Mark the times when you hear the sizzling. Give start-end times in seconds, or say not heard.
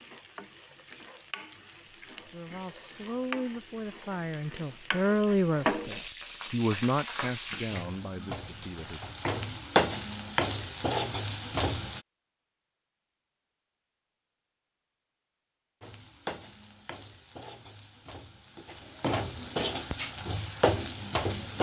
0.0-12.0, 15.8-21.5.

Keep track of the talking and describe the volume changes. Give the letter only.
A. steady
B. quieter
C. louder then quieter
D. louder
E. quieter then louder
C.